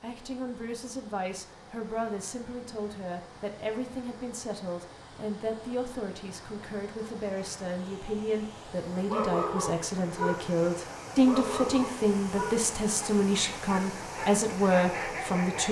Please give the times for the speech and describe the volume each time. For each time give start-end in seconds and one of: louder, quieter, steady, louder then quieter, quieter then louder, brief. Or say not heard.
0.0-15.6 louder.